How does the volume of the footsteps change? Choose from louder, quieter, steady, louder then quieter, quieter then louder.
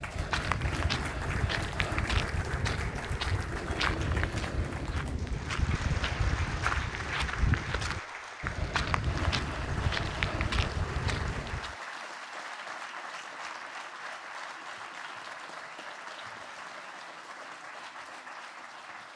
steady.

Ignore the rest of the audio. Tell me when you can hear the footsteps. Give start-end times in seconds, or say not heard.
0.0-11.8.